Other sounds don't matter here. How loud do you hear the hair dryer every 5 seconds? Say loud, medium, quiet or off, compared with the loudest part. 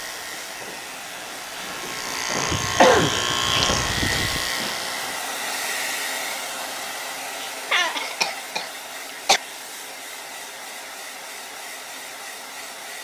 loud, loud, medium.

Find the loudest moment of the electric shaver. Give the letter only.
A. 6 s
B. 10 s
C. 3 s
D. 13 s
C.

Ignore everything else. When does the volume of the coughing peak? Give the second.
3 s.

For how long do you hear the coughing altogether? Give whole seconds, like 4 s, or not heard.
4 s.